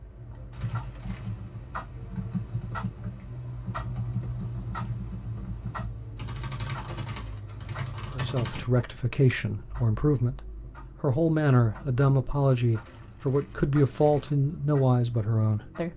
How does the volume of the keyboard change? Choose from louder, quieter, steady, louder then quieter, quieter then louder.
steady.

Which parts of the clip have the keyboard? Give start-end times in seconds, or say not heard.
0.5-8.7.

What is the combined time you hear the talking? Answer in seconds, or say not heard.
8 s.